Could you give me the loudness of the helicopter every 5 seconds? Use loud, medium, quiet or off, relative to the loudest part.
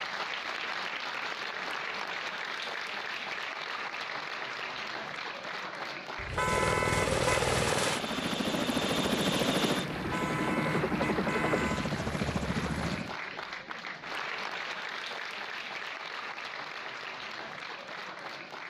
off, loud, loud, off.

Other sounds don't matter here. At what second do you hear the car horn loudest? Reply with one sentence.
The volume of the car horn peaks at 7 seconds.